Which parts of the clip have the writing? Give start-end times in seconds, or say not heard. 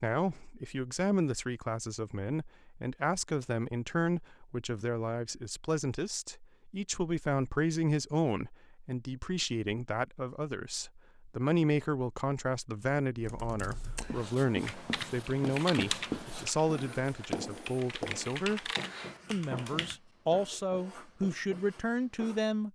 14.1-22.4.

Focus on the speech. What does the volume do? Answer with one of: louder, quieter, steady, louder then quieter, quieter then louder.
steady.